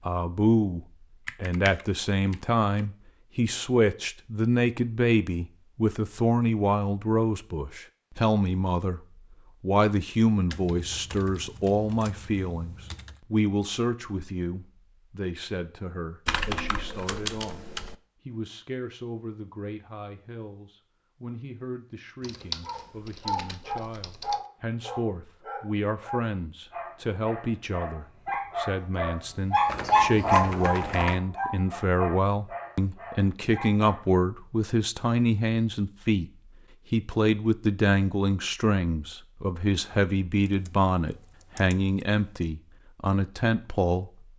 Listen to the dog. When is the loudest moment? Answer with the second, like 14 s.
30 s.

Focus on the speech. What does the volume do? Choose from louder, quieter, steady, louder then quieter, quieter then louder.
quieter then louder.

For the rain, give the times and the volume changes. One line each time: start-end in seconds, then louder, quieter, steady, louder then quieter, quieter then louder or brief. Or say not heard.
not heard.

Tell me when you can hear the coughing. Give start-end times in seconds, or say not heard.
not heard.